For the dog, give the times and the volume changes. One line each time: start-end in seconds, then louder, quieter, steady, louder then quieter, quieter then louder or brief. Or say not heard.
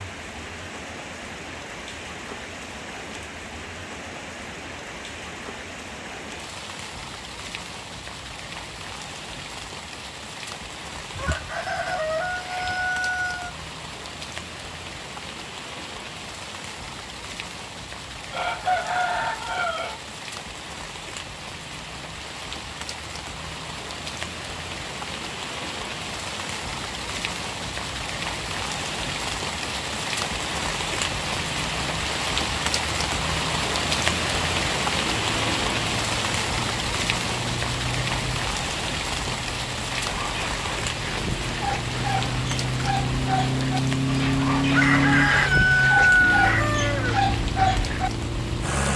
40.0-48.1 louder.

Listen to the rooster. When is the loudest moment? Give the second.
46 s.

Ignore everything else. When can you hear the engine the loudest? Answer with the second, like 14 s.
45 s.